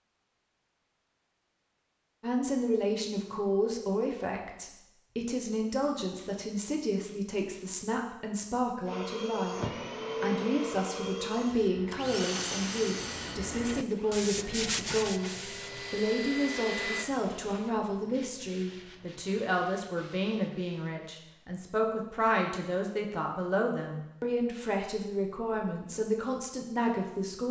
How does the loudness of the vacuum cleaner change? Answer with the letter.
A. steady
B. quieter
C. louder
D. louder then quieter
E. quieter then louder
E.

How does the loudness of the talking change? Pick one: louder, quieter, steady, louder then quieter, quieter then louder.
steady.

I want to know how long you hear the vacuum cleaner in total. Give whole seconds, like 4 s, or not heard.
8 s.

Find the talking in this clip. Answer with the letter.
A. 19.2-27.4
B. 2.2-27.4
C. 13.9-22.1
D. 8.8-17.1
B.